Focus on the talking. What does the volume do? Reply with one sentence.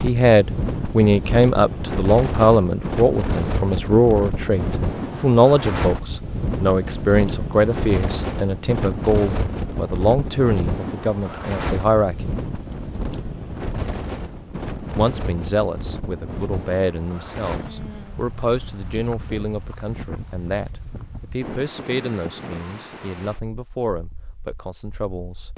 The volume of the talking goes down.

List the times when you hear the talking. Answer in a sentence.
The talking can be heard from 0.0 to 12.3 s and from 14.8 to 25.5 s.